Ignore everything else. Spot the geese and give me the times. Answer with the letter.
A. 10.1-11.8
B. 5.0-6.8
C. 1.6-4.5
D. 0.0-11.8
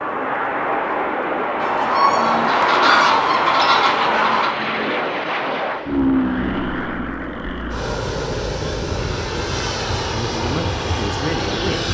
C.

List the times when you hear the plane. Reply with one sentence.
The plane can be heard from 0.0 to 11.8 s.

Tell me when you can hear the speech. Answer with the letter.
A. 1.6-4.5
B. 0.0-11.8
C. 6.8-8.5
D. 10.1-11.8
D.